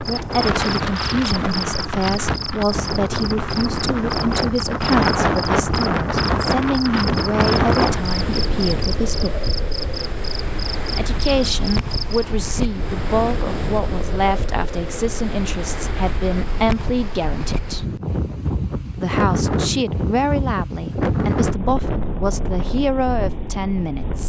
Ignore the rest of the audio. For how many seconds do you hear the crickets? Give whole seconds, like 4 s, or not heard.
12 s.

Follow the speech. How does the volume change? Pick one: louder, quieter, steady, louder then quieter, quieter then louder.
steady.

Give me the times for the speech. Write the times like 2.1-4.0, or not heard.
0.1-9.5, 10.9-18.0, 19.0-24.2.